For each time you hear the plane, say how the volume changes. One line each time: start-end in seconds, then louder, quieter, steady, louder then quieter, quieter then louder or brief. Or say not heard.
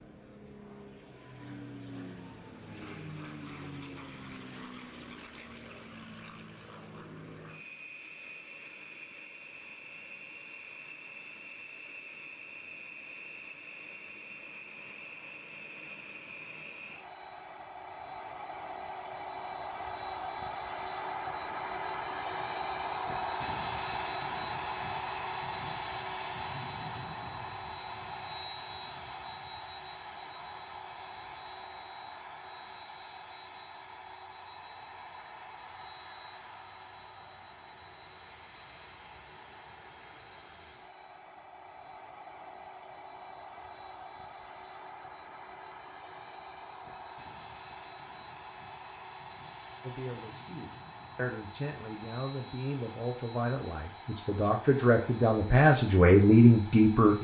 0.0-57.2 louder then quieter.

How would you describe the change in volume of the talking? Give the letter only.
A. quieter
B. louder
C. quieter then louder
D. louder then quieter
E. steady
B.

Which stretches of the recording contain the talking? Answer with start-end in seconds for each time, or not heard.
49.8-57.2.